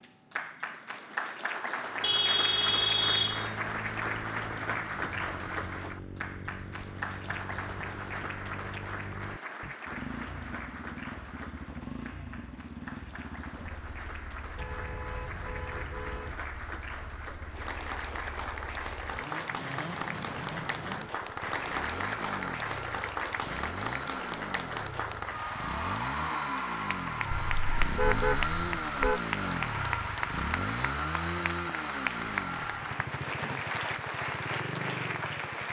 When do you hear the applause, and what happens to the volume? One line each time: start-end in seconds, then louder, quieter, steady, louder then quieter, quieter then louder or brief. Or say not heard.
0.0-35.6 quieter then louder.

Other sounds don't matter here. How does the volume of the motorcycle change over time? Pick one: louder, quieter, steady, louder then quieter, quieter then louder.
louder.